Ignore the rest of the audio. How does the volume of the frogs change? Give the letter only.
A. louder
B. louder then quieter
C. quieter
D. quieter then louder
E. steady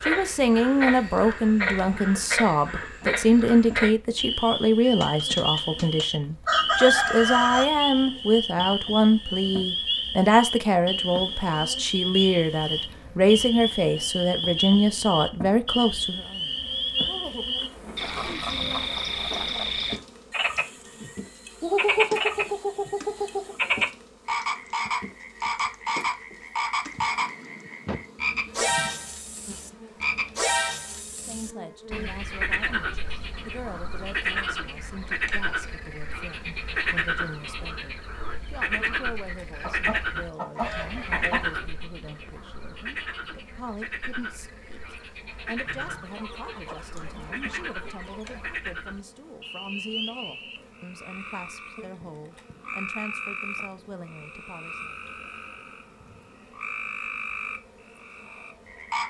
C.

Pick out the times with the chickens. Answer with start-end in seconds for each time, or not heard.
4.8-7.7, 21.6-23.6, 39.6-41.4, 45.6-48.5.